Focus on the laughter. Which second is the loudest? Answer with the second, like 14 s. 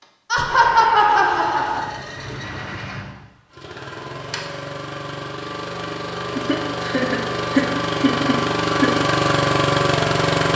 1 s.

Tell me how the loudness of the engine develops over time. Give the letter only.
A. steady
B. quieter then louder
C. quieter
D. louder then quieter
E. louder
E.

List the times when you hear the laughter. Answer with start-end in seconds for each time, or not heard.
0.3-1.9, 6.3-8.9.